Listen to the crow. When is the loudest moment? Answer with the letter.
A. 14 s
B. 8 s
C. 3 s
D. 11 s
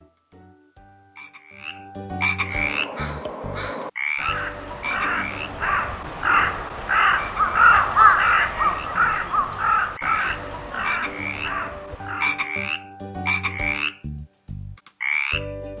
B.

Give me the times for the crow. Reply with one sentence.
You can hear the crow from 2.4 to 12.4 s.